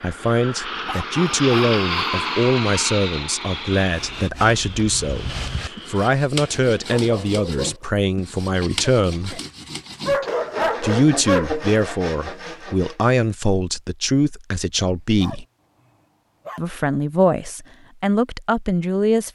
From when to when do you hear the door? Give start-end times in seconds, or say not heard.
not heard.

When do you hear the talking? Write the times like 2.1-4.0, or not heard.
0.0-9.4, 10.8-15.4, 16.6-19.2.